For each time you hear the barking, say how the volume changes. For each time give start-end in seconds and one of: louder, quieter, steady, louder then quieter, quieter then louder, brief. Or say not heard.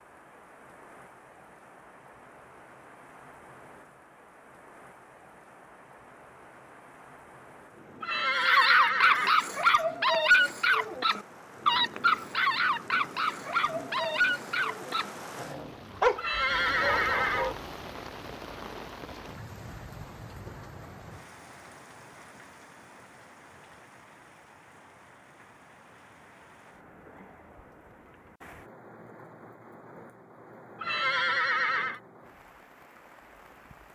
8.4-17.7 quieter.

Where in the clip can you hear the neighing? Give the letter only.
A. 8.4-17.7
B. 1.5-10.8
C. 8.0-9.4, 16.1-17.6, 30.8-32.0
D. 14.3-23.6
C.